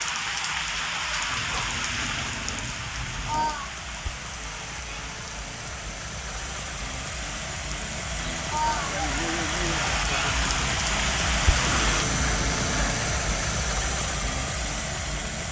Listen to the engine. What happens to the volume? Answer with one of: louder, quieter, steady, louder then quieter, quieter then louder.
louder.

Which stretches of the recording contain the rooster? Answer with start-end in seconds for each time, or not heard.
8.5-10.5.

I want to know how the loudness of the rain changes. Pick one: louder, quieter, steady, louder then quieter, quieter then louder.
quieter then louder.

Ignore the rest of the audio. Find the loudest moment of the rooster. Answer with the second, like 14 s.
9 s.